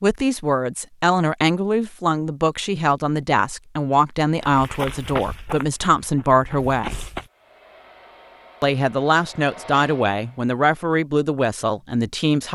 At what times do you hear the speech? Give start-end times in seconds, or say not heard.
0.0-7.0, 8.6-12.4.